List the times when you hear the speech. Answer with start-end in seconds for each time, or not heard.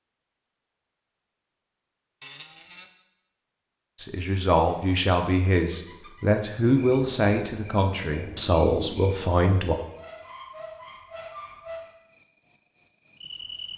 4.0-9.8.